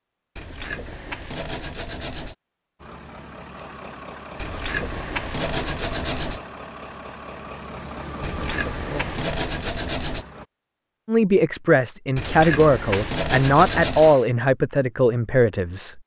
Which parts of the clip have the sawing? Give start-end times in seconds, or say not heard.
0.3-2.4, 4.3-6.4, 8.2-10.2, 12.2-14.2.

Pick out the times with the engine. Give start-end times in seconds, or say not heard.
2.8-10.4.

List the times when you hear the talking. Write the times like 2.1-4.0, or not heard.
11.1-16.0.